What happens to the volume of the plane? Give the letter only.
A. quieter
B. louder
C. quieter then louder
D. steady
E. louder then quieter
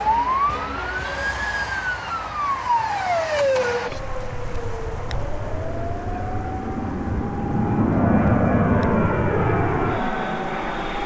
B.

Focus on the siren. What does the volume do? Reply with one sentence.
The loudness of the siren goes down.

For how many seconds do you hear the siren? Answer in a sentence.
You can hear the siren for 11 seconds altogether.